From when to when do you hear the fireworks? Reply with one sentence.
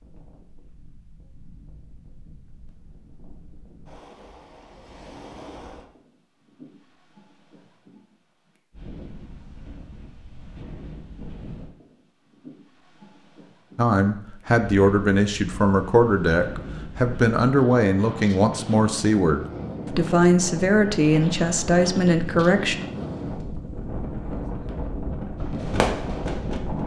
You can hear the fireworks from 25.4 to 26.8 s.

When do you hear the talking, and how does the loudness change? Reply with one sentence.
You can hear the talking from 13.8 to 22.8 s, at a steady volume.